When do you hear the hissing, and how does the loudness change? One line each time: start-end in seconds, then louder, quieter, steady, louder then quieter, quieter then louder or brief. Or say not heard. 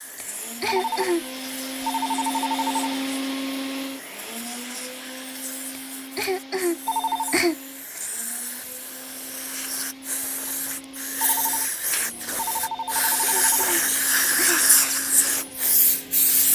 0.0-16.5 louder.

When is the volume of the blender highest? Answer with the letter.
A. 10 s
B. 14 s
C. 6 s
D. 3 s
D.